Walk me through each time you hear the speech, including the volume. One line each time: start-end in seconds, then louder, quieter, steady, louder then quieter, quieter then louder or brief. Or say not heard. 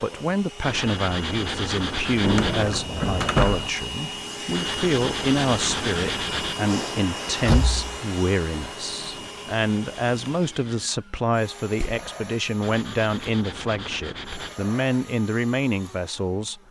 0.0-16.6 steady.